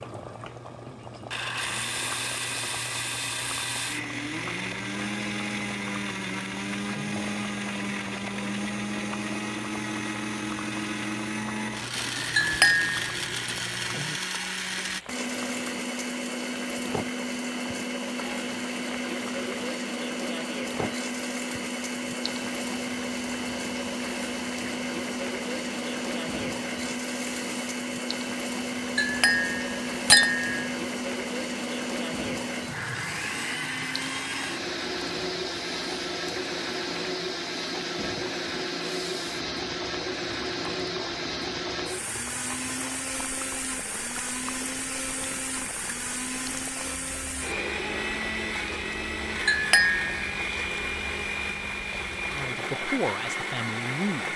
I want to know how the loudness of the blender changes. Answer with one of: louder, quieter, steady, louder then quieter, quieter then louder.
steady.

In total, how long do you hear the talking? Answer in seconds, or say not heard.
2 s.